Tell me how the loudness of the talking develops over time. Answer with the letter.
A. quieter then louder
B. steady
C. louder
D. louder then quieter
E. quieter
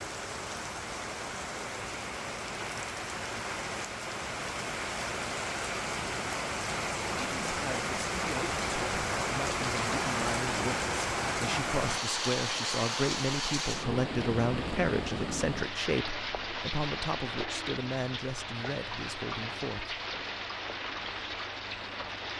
D.